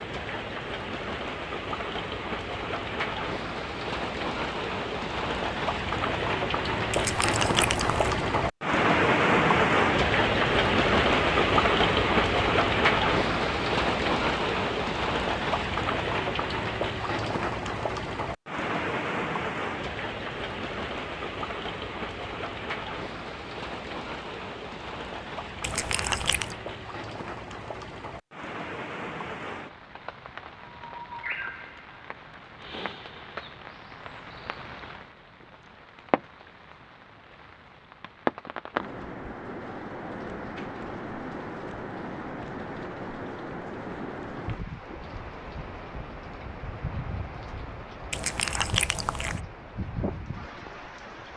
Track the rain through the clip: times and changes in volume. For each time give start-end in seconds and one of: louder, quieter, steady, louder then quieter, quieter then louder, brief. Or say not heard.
0.0-51.3 quieter.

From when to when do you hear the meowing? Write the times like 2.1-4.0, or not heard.
6.9-8.2, 25.6-26.6, 48.1-49.4.